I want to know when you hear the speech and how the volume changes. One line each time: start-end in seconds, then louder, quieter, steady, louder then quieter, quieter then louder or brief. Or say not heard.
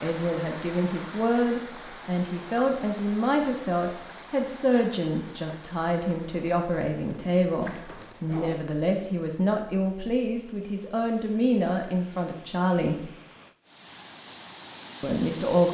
0.0-13.1 steady
15.0-15.6 brief.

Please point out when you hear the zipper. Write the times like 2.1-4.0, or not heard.
7.6-8.7.